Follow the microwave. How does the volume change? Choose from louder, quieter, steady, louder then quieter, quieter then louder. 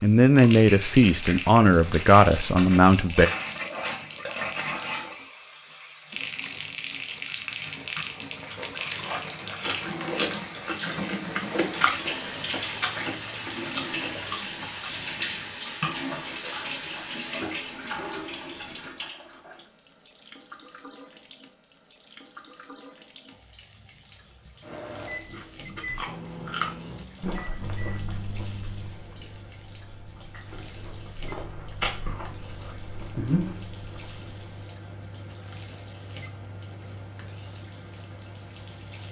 quieter.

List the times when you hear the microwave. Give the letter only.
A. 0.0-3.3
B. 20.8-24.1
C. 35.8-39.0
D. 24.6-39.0
D.